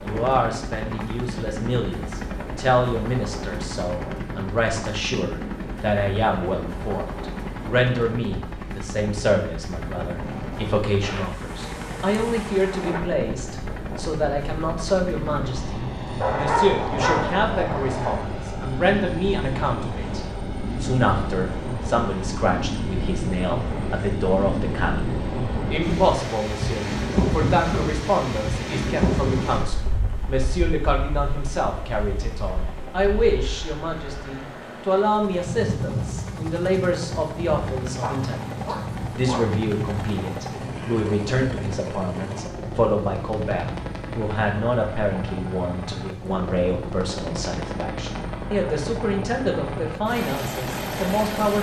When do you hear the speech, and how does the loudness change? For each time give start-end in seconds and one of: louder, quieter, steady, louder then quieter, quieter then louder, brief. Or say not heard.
0.0-20.2 steady
20.8-51.5 steady.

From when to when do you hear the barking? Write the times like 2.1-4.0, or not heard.
16.2-18.2, 38.0-39.5.